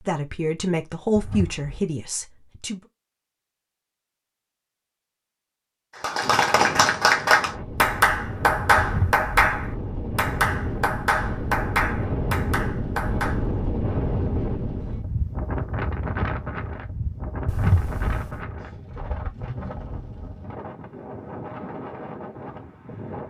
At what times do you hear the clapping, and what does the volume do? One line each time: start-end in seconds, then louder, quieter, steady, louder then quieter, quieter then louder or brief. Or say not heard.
6.0-13.4 quieter.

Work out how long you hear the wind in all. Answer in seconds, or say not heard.
17 s.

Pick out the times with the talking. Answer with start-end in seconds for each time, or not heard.
0.0-2.8.